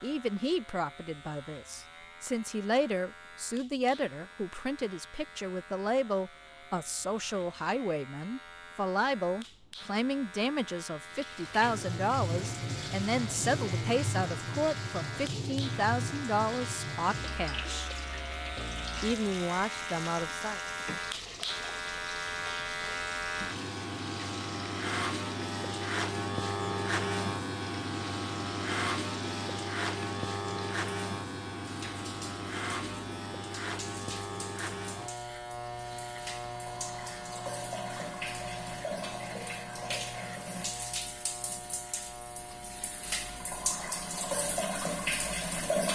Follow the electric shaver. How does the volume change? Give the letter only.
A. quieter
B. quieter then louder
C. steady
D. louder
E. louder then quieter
E.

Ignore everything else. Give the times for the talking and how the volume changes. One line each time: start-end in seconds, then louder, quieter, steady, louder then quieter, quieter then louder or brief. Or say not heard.
0.0-17.9 steady
19.0-20.6 brief.